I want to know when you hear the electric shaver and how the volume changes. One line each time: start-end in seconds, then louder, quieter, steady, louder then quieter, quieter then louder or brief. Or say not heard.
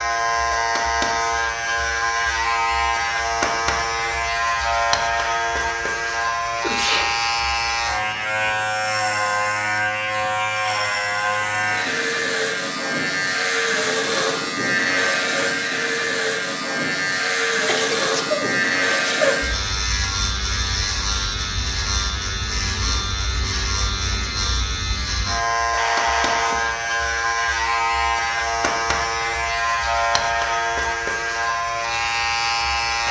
0.0-33.0 steady.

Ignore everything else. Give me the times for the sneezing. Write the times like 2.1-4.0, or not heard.
6.5-7.1, 17.6-19.4, 25.8-26.9.